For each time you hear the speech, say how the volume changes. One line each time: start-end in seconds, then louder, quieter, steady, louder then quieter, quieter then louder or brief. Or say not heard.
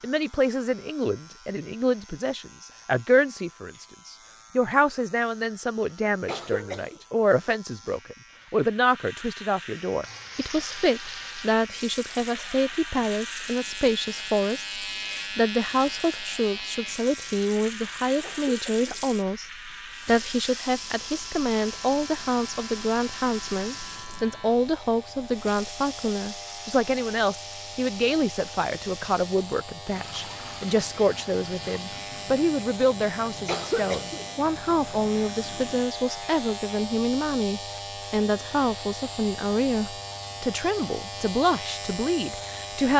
0.0-19.4 steady
20.1-42.9 steady.